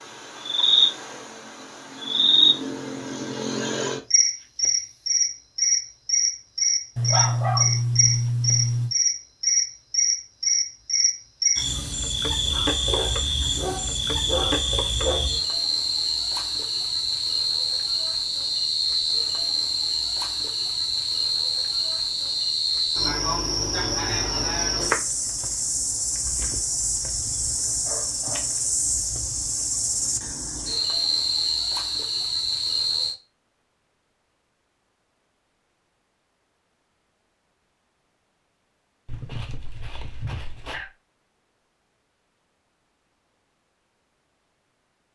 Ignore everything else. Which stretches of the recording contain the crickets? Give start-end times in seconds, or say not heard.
0.0-33.1.